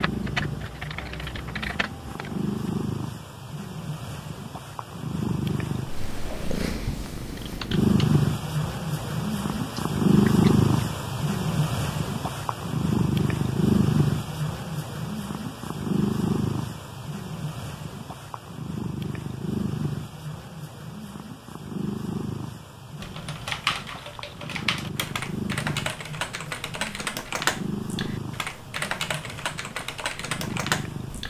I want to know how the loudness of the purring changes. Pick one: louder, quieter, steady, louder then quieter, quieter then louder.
louder then quieter.